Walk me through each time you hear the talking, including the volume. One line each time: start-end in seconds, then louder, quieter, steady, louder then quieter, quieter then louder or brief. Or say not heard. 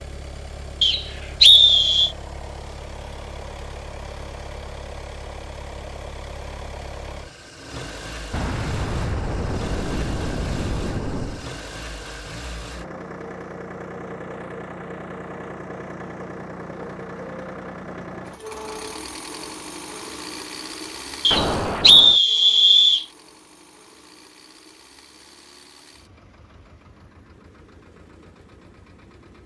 not heard.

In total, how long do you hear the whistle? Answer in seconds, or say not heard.
3 s.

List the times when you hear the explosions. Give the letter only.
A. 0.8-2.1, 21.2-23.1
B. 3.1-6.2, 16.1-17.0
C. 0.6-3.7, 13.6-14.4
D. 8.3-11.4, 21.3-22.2
D.